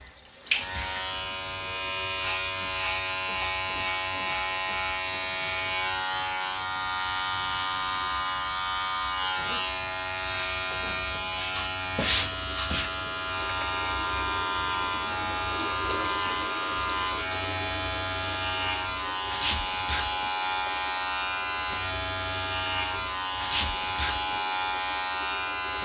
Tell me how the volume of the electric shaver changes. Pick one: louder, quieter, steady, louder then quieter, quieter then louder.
steady.